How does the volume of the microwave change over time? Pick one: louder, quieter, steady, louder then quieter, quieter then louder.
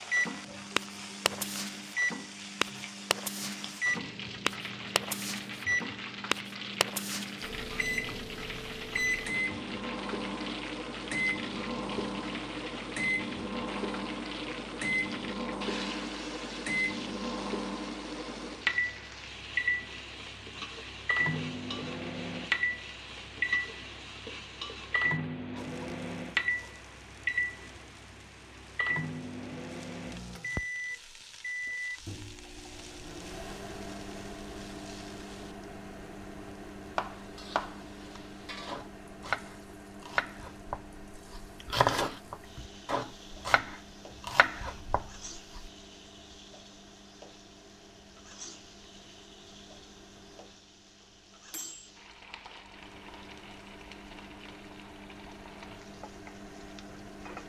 quieter.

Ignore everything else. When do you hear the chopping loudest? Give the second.
42 s.